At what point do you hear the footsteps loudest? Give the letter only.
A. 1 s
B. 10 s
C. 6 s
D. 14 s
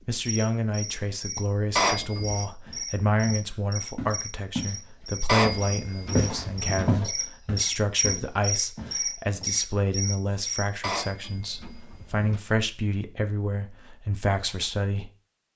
C.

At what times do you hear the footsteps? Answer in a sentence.
You can hear the footsteps from 2.6 to 4.8 s and from 5.4 to 9.5 s.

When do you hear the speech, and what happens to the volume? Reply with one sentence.
You can hear the speech from 0.1 to 15.1 s, at a steady volume.